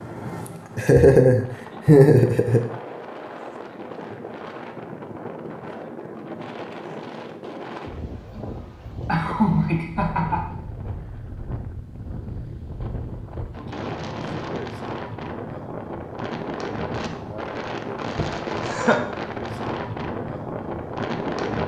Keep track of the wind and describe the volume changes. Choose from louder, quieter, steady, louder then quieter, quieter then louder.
louder.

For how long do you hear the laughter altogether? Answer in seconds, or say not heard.
4 s.